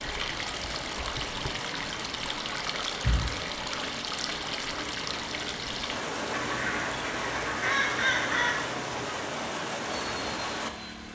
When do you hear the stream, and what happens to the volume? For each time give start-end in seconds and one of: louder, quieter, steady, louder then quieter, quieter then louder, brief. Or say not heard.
0.0-11.1 steady.